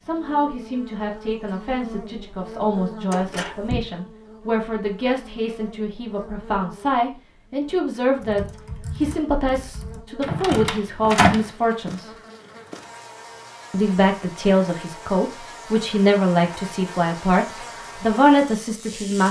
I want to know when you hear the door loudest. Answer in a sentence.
The loudest moment of the door is at 11 seconds.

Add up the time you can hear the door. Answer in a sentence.
You can hear the door for 2 seconds altogether.